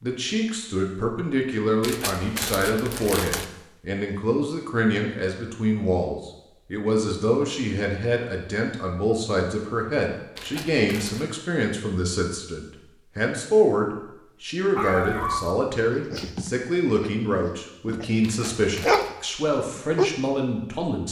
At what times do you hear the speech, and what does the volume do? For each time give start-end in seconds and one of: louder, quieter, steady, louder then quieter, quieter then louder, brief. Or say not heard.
0.0-21.0 steady.